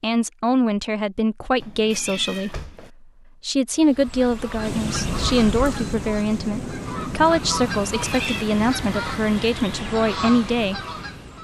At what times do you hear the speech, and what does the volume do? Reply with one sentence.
You can hear the speech briefly from 0.0 to 2.6 s; and from 3.4 to 10.8 s, at a steady volume.